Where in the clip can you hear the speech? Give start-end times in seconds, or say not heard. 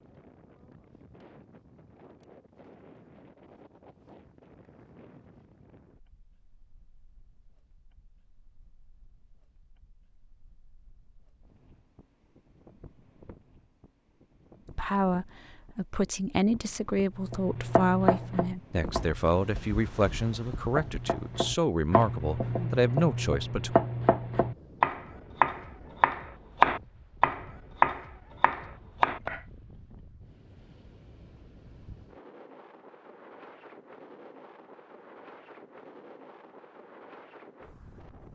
14.8-23.8.